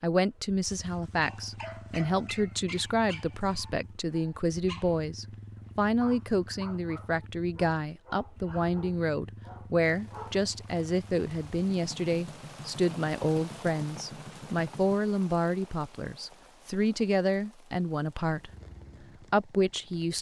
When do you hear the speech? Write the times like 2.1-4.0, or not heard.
0.0-18.5, 19.3-20.1.